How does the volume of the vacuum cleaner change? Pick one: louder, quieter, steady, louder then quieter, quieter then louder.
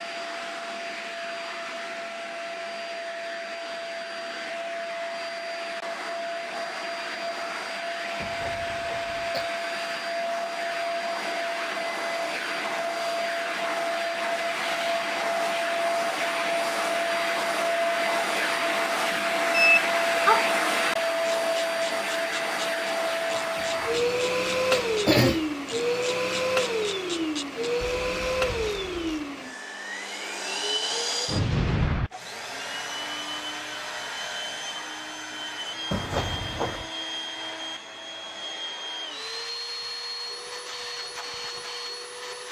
louder then quieter.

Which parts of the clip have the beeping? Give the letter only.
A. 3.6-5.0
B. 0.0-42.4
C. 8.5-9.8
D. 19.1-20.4
D.